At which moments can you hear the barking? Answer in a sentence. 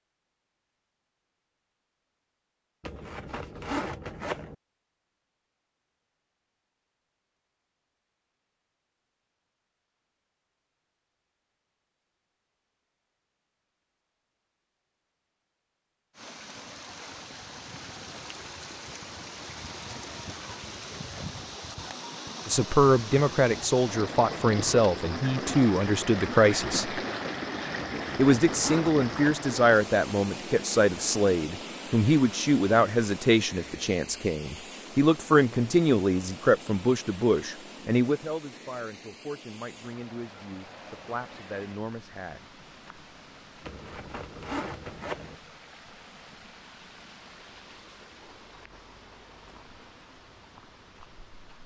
The barking can't be heard in this clip.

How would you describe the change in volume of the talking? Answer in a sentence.
The loudness of the talking goes down.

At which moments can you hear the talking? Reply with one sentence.
You can hear the talking from 22.4 to 27.0 s and from 28.1 to 42.4 s.